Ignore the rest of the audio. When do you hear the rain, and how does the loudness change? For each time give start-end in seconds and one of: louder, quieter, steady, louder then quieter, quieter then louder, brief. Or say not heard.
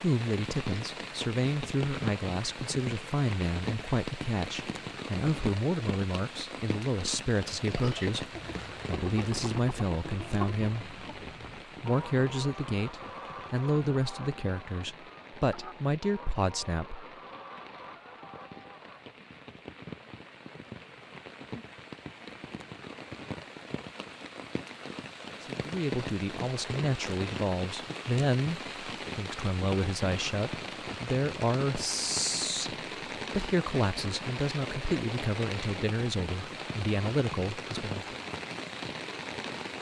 0.0-39.7 quieter then louder.